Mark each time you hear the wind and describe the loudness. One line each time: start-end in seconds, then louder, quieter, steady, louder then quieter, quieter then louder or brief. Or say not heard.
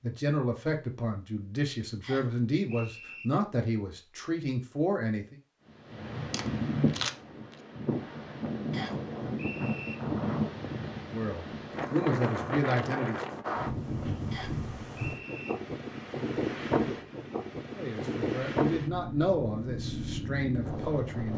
5.7-21.3 steady.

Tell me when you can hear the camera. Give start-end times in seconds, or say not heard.
6.3-7.5.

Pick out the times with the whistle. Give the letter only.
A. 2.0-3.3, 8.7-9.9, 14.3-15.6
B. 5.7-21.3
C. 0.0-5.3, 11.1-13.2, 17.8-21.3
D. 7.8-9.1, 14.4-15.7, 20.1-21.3
A.